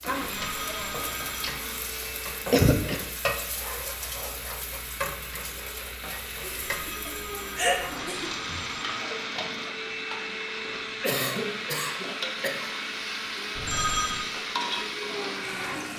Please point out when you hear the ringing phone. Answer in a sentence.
The ringing phone can be heard from 0.1 to 1.6 s, from 6.7 to 8.9 s and from 13.6 to 14.2 s.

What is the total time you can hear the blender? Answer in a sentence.
You can hear the blender for 16 seconds altogether.